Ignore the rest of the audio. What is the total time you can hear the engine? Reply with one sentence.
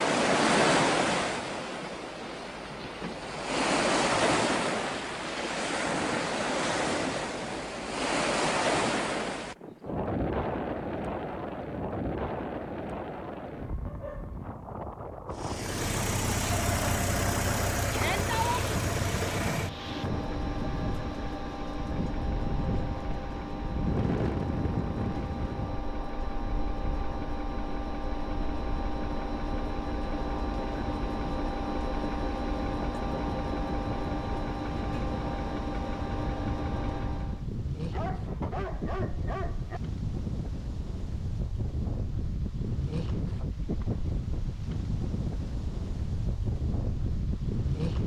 The engine can be heard for 22 seconds in total.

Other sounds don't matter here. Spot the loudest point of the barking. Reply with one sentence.
The volume of the barking peaks at 39 seconds.